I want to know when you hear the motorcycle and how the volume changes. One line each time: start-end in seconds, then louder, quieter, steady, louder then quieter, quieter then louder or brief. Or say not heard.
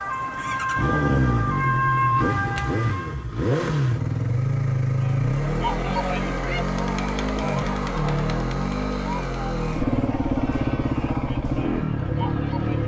0.1-12.8 steady.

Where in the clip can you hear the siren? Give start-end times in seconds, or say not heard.
0.0-3.2.